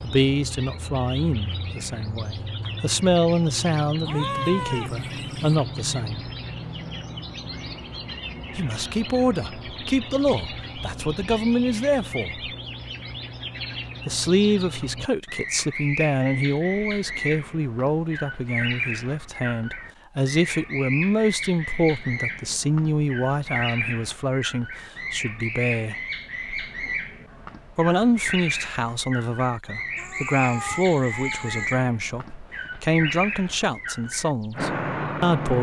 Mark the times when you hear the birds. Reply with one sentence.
You can hear the birds from 0.0 to 35.5 s.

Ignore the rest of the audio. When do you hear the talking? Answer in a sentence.
The talking can be heard from 0.0 to 6.2 s, from 8.6 to 12.5 s, from 14.1 to 25.9 s and from 27.8 to 35.5 s.